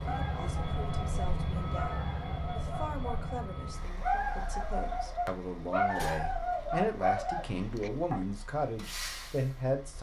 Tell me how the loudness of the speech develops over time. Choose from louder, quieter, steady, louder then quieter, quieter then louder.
louder.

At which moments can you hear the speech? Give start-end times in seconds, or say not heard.
0.1-9.9.